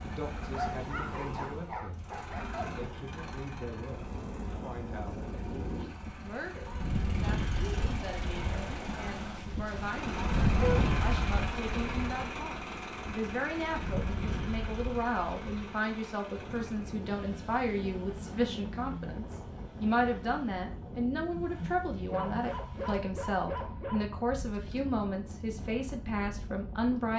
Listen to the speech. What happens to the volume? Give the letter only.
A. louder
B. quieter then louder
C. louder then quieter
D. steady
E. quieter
A.